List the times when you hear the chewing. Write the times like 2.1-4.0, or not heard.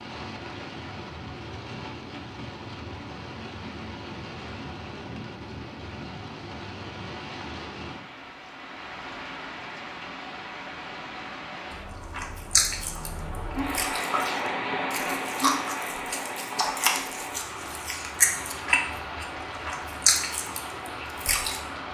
12.1-21.6.